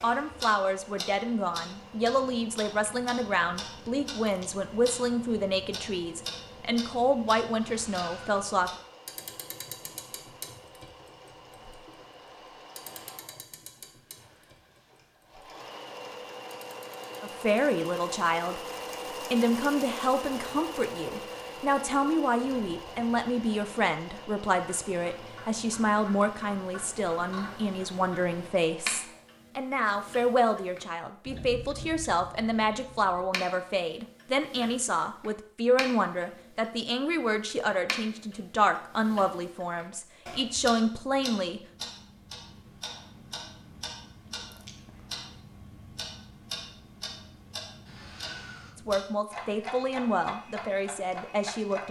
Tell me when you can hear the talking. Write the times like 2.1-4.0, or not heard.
0.0-8.7, 17.2-41.6, 48.8-51.8.